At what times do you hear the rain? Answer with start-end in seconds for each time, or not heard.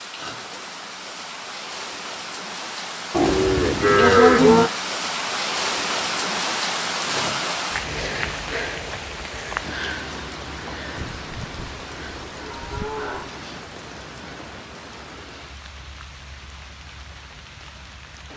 0.0-18.3.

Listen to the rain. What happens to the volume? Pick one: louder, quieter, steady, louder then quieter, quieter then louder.
louder then quieter.